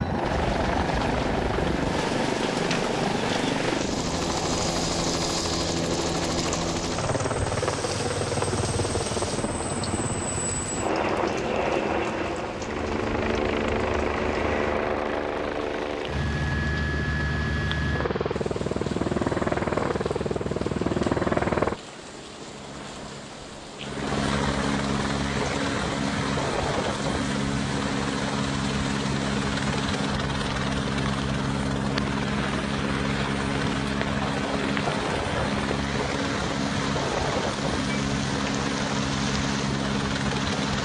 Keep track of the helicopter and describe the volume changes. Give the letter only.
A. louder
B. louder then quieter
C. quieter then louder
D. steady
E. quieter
D.